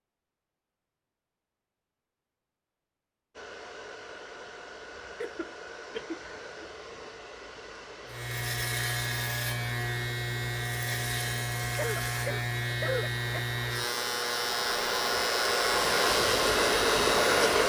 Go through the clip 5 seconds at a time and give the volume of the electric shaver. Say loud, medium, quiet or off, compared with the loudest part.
off, loud, loud, loud.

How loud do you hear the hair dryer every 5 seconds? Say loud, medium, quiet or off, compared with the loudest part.
quiet, quiet, quiet, loud.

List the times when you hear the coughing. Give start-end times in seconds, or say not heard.
5.2-6.7, 11.8-13.4.